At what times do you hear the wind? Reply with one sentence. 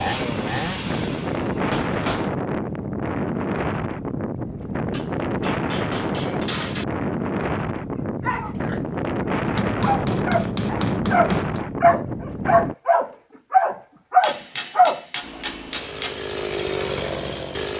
The wind can be heard from 0.0 to 12.8 s.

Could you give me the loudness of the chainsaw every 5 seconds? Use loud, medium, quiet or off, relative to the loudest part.
loud, off, off, loud.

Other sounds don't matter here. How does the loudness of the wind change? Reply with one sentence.
The loudness of the wind stays about the same.